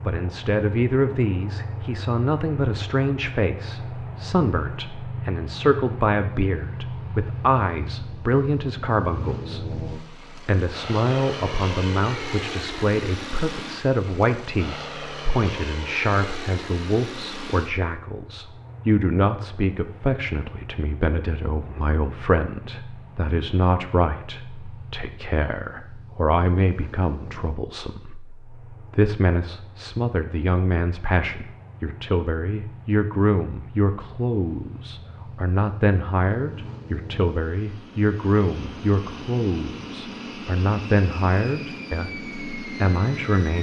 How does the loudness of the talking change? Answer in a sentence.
The volume of the talking stays about the same.